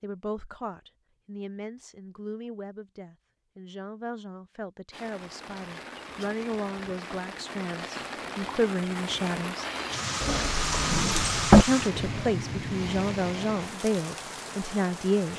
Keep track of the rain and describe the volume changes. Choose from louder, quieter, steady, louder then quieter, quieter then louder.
louder then quieter.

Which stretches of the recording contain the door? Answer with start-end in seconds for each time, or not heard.
10.2-11.7.